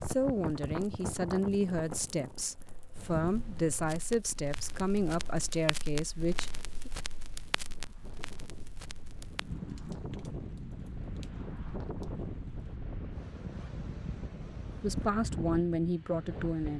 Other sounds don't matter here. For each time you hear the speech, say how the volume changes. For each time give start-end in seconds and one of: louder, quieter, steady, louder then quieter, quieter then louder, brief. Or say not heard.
0.0-6.9 steady
14.8-16.7 brief.